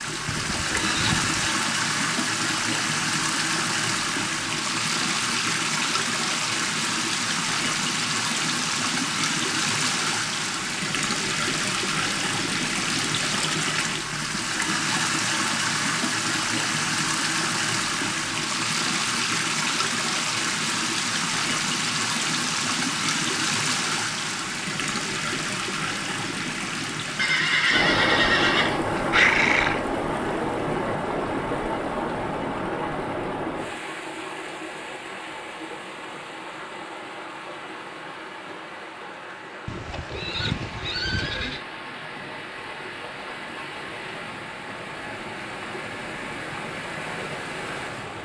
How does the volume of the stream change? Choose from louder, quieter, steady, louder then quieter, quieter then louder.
quieter.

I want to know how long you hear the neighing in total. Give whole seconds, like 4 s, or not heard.
6 s.